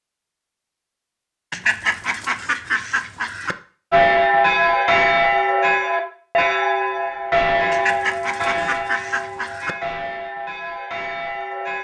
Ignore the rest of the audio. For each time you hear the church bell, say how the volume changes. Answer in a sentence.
You can hear the church bell from 3.9 to 11.7 s, getting quieter.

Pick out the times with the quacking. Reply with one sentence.
You can hear the quacking from 1.5 to 3.5 s and from 7.7 to 9.8 s.